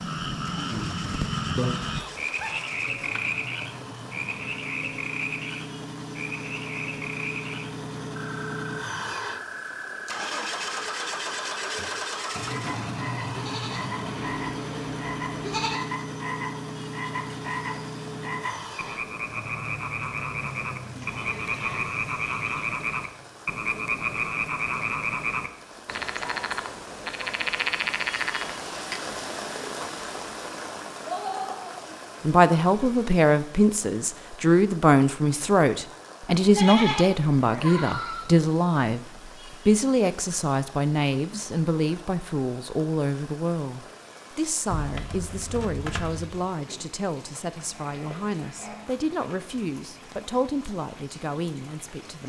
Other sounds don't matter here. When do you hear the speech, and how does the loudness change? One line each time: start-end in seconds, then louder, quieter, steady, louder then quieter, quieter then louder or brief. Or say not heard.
32.2-52.2 quieter.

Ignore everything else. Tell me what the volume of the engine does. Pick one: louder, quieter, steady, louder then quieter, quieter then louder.
louder then quieter.